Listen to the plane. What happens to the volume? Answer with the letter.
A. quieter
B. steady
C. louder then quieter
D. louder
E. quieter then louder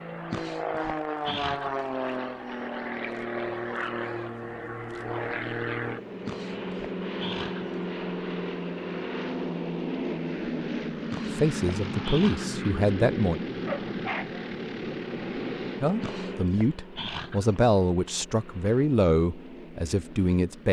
A.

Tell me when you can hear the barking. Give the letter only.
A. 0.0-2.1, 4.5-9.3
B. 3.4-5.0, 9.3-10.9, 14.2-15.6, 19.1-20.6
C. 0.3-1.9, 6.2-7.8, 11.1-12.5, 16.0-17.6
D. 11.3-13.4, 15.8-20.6
C.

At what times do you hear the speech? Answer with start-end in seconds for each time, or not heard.
11.3-13.4, 15.8-20.6.